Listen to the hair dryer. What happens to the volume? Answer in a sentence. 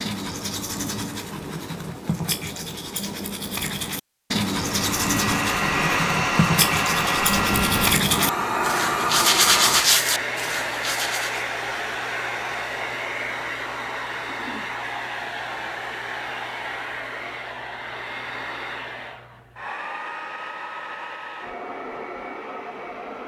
The loudness of the hair dryer goes down.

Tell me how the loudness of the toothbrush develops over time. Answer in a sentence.
The loudness of the toothbrush goes up.